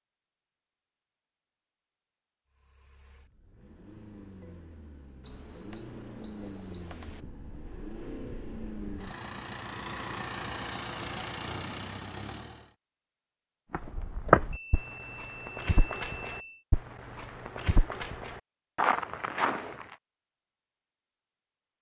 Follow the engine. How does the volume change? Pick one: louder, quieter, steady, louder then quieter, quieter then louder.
louder.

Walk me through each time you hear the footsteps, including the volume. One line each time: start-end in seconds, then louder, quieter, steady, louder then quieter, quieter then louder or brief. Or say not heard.
13.7-19.9 quieter then louder.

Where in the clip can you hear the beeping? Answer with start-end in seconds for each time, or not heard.
5.2-7.2, 14.5-16.6.